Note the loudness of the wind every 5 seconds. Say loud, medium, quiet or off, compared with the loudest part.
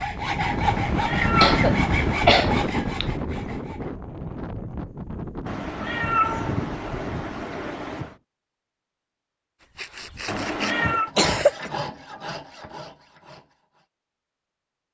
loud, medium, off.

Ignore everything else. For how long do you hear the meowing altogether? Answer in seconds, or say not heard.
5 s.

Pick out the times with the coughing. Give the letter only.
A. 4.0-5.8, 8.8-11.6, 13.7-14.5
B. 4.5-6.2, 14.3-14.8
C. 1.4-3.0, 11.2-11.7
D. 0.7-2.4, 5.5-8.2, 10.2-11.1
C.